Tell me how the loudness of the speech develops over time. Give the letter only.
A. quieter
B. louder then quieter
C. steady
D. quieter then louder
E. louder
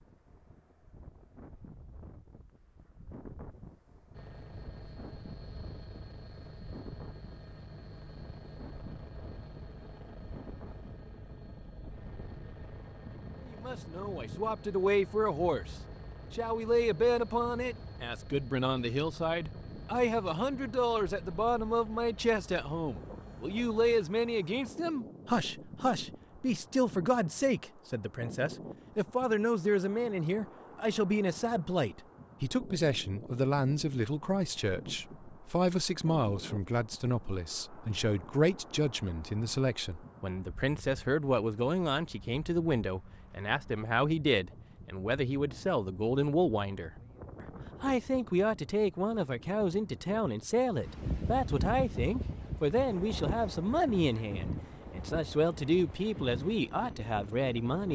C.